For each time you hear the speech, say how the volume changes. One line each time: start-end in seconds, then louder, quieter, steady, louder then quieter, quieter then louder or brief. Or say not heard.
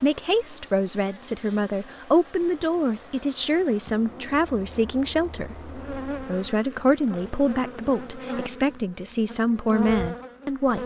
0.0-10.8 steady.